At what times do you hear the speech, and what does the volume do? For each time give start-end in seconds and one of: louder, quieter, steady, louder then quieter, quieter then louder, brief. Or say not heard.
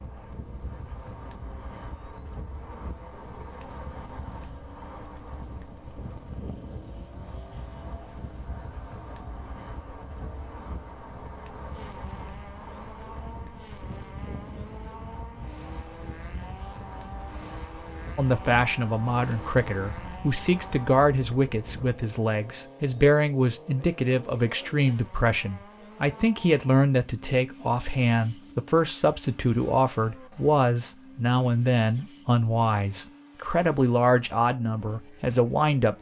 18.1-35.9 steady.